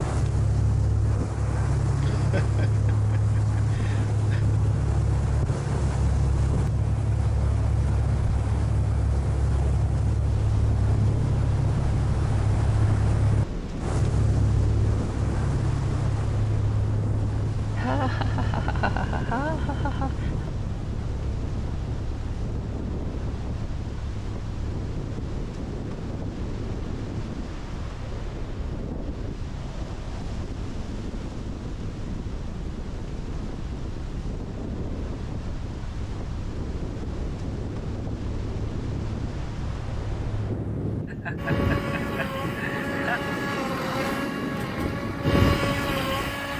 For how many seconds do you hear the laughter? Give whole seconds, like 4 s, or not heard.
7 s.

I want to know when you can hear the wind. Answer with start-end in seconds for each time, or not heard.
10.2-46.5.